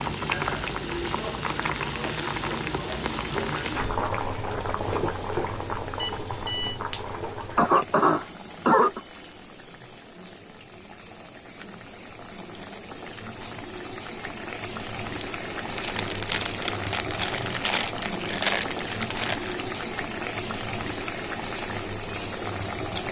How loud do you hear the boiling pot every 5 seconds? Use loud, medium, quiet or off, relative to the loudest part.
loud, medium, medium, loud, loud.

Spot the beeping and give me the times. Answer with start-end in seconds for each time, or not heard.
6.0-6.8.